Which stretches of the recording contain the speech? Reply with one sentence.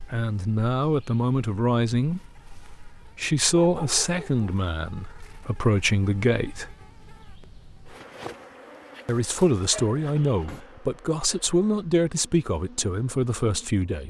The speech can be heard from 0.1 to 2.2 s, from 3.0 to 6.8 s and from 9.1 to 14.0 s.